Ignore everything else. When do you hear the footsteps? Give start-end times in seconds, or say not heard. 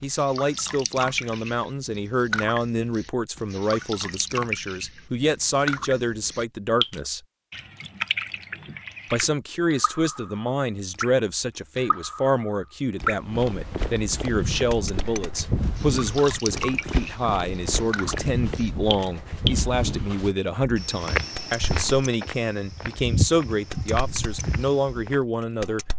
13.0-25.1.